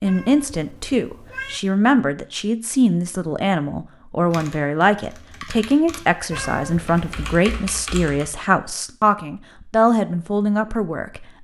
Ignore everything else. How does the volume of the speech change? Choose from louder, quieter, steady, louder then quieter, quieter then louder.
steady.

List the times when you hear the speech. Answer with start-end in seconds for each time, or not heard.
0.0-11.2.